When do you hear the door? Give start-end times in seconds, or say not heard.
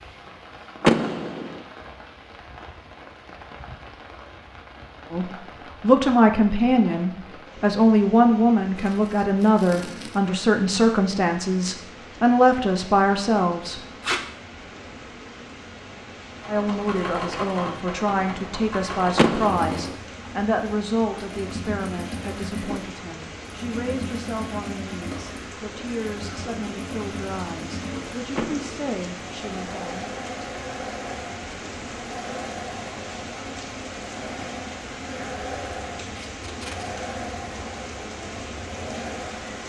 0.8-1.6, 19.1-19.9, 28.4-28.9.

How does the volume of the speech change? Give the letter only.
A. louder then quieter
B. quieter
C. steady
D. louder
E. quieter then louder
B.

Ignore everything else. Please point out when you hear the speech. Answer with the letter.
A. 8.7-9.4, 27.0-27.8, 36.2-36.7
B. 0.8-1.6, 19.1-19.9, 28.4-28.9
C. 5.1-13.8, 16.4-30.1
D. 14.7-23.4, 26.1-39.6
C.